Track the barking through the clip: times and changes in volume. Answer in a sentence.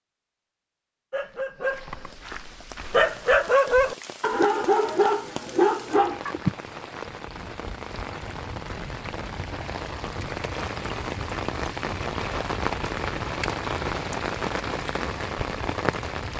You can hear the barking from 1.1 to 6.5 s, getting louder.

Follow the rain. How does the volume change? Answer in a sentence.
The loudness of the rain goes up.